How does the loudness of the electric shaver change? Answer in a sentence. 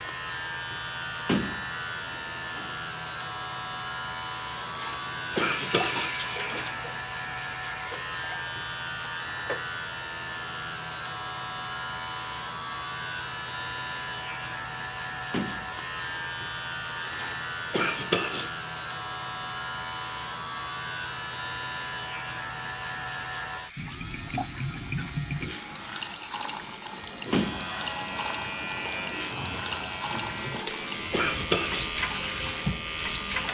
The loudness of the electric shaver stays about the same.